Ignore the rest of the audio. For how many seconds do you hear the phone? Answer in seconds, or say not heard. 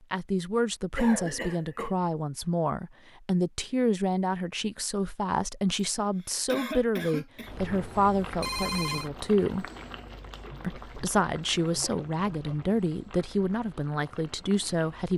2 s.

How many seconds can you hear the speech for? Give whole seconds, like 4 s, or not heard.
14 s.